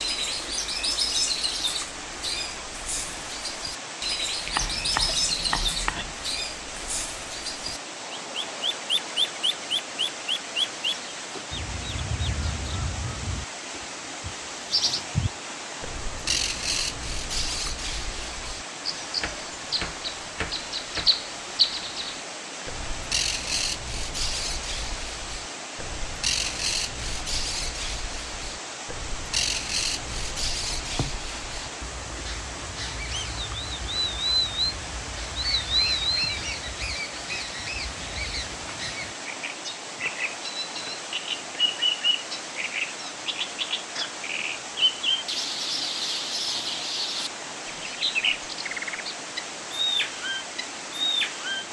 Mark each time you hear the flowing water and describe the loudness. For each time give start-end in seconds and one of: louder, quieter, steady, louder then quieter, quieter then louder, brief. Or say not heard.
0.0-51.6 steady.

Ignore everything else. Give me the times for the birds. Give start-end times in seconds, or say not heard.
0.0-51.6.